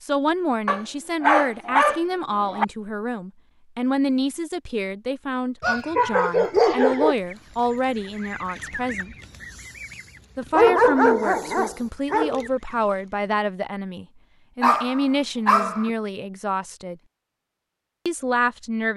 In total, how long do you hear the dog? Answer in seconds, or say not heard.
7 s.